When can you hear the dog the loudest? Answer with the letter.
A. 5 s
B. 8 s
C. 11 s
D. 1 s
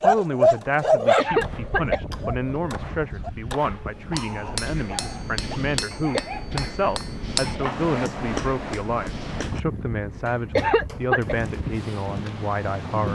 D.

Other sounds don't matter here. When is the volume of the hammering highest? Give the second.
8 s.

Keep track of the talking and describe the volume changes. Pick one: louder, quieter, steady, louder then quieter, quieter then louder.
steady.